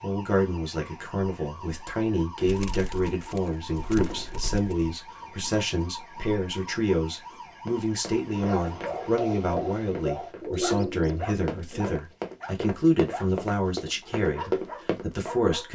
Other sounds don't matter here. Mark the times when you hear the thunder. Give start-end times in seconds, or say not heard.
not heard.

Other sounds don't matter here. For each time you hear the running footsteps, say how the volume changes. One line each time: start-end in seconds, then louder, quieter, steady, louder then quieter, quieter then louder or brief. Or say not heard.
7.7-15.3 louder.